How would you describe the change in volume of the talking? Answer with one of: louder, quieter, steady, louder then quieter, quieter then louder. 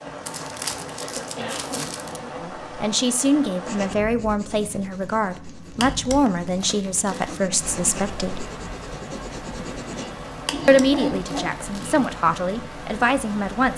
steady.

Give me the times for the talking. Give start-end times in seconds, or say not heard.
2.2-8.4, 10.7-13.7.